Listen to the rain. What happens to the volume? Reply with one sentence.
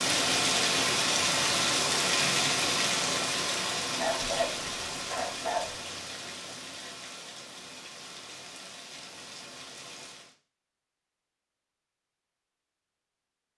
The volume of the rain goes down.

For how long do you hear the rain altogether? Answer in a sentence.
The rain can be heard for 10 seconds in total.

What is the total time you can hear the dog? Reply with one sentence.
You can hear the dog for 2 seconds altogether.